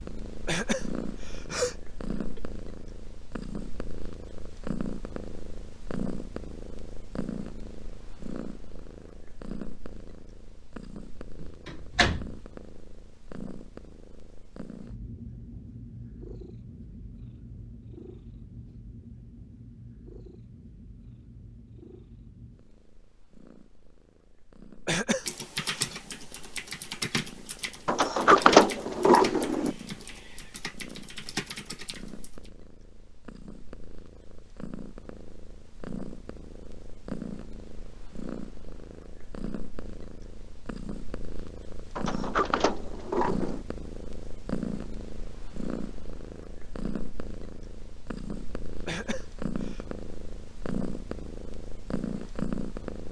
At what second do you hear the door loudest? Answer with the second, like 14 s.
28 s.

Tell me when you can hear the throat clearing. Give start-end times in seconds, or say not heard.
0.5-2.4, 24.9-25.9, 48.9-49.9.